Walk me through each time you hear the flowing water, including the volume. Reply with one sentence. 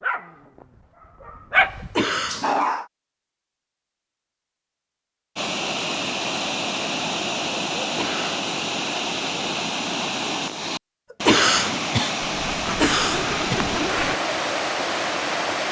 The flowing water can be heard from 5.3 to 15.6 s, at a steady volume.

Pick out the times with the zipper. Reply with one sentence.
The zipper can be heard from 12.2 to 14.2 s.